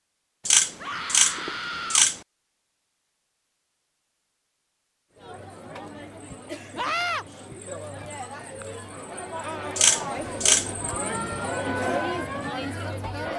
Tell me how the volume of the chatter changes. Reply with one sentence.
The volume of the chatter goes up.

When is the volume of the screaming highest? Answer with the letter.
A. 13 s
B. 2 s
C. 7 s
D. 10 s
C.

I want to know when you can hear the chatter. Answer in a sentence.
The chatter can be heard from 5.2 to 13.3 s.